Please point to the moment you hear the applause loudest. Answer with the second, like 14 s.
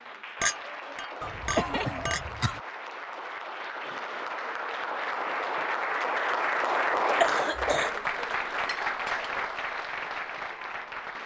7 s.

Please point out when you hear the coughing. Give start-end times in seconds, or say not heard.
1.2-2.6, 7.2-8.0.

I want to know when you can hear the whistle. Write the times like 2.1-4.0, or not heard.
not heard.